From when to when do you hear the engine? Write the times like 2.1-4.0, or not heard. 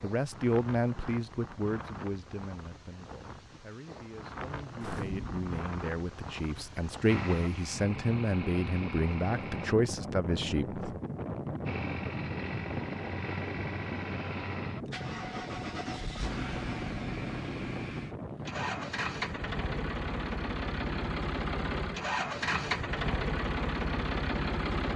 7.0-9.8, 11.7-24.9.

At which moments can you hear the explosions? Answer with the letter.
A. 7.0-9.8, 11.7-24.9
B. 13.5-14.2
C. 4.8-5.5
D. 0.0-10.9
C.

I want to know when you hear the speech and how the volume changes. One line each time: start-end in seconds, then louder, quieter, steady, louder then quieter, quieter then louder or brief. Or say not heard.
0.0-10.9 quieter then louder.